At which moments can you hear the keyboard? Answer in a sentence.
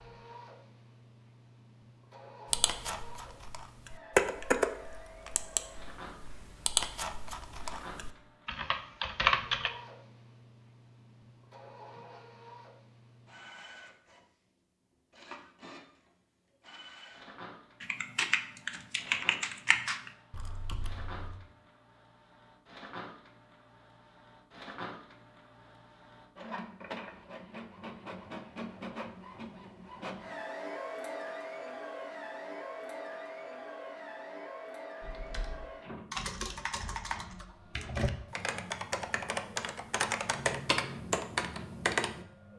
You can hear the keyboard from 2.5 to 9.7 s, from 17.8 to 21.4 s and from 35.0 to 42.2 s.